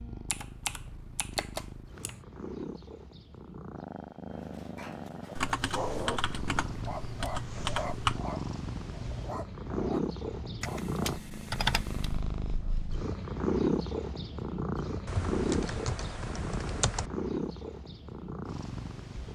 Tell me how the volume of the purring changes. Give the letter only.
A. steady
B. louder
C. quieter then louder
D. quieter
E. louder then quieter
B.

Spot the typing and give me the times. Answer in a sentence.
The typing can be heard from 0.3 to 2.2 s, from 5.3 to 8.2 s, from 10.6 to 12.2 s and from 15.1 to 17.1 s.